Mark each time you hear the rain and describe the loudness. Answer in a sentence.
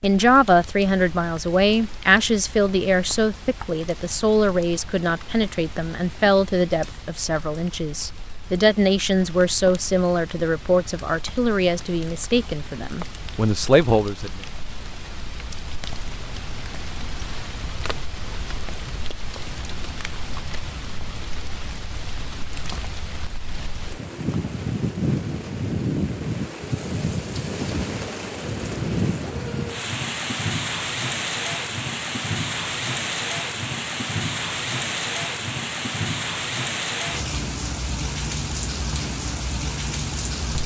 You can hear the rain from 0.0 to 40.6 s, getting louder.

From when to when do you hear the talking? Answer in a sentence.
You can hear the talking from 0.0 to 14.4 s.